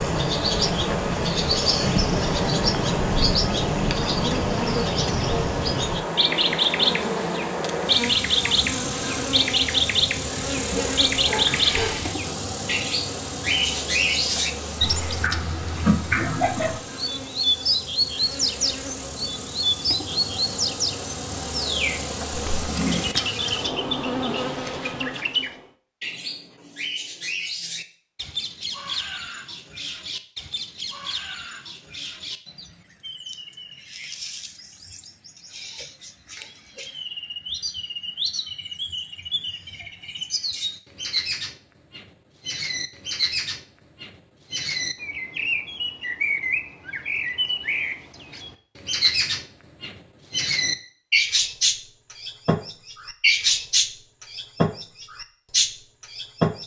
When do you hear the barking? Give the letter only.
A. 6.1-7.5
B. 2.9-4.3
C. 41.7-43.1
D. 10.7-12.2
D.